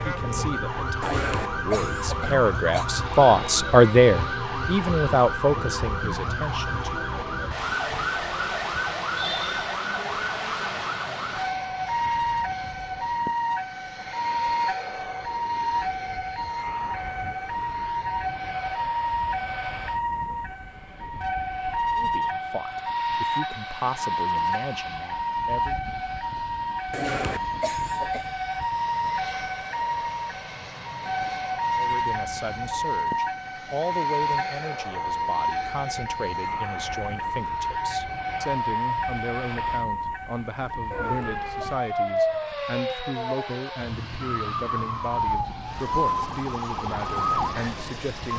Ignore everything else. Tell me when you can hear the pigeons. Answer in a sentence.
You can't hear the pigeons here.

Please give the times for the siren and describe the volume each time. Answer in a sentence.
The siren can be heard from 0.0 to 48.3 s, at a steady volume.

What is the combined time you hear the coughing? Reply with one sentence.
You can hear the coughing for 4 seconds altogether.